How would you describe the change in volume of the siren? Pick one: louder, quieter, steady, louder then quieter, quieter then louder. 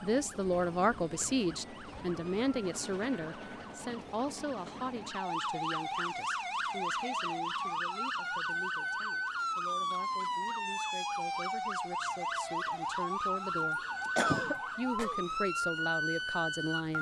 louder.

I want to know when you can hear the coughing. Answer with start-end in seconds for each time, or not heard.
14.2-15.2.